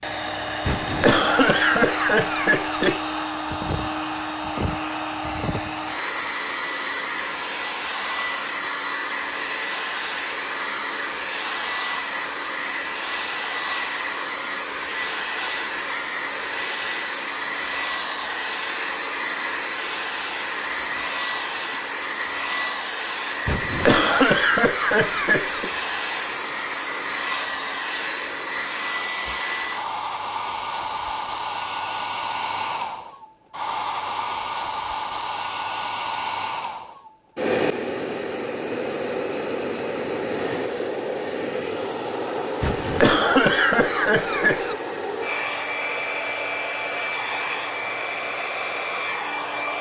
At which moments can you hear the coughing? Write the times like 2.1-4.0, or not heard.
0.7-3.0, 23.4-25.7, 42.6-44.8.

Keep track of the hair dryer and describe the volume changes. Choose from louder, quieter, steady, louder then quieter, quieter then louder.
steady.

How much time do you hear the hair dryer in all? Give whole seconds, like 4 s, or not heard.
50 s.